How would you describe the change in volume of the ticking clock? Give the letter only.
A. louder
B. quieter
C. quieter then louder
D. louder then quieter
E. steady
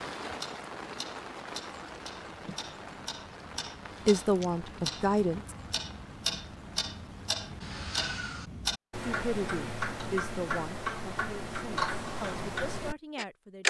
A.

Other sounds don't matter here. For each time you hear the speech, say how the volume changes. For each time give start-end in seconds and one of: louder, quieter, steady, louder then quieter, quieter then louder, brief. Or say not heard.
4.0-5.5 brief
9.1-13.6 quieter then louder.